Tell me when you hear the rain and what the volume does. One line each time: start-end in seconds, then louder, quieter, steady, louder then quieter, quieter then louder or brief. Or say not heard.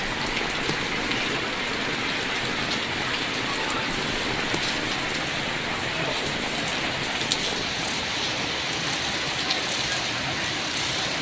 0.0-11.1 steady.